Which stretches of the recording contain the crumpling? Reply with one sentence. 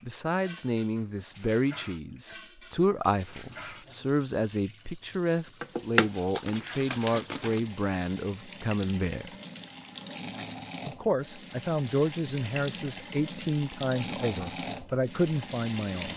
The crumpling can be heard from 5.6 to 7.6 s.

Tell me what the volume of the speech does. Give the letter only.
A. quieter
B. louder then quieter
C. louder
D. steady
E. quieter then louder
D.